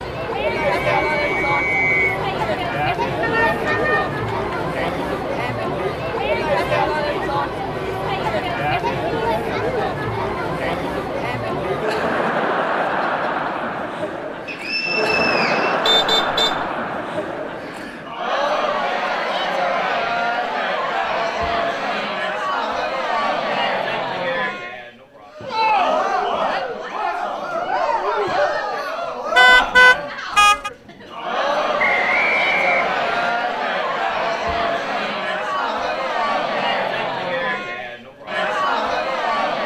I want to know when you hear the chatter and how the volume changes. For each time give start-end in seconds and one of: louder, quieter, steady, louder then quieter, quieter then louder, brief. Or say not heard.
0.0-39.6 steady.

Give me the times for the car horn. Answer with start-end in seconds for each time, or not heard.
3.2-4.5, 15.8-16.6, 29.4-30.7.